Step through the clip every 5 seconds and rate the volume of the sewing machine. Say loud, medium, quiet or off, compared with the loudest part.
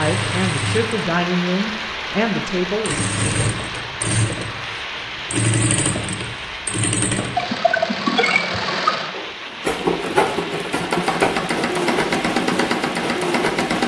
medium, loud, loud.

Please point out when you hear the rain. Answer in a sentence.
You can hear the rain from 0.0 to 13.8 s.